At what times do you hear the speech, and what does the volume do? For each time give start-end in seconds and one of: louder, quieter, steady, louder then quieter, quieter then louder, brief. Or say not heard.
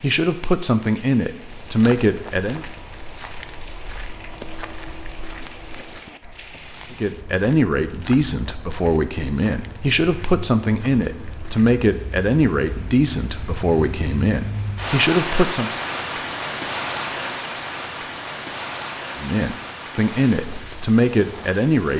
0.0-2.6 brief
6.9-15.7 steady
19.1-21.9 brief.